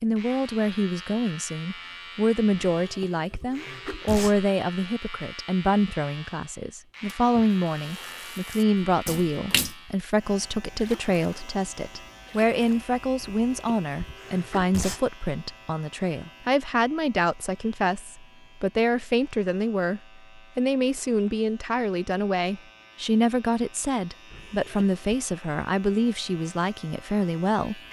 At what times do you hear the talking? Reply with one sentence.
The talking can be heard from 0.0 to 27.8 s.